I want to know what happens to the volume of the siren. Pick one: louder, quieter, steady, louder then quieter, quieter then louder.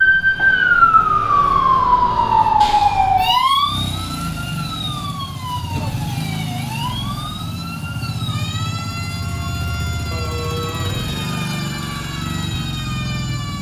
quieter.